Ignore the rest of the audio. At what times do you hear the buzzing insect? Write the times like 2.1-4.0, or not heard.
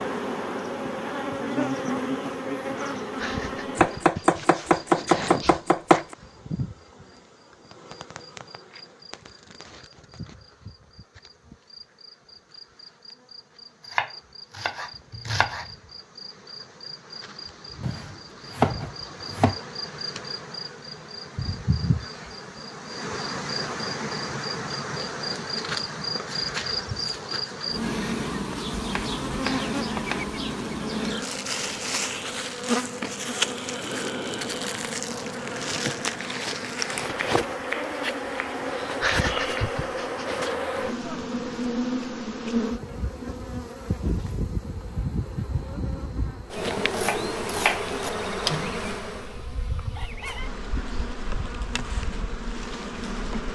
0.0-53.5.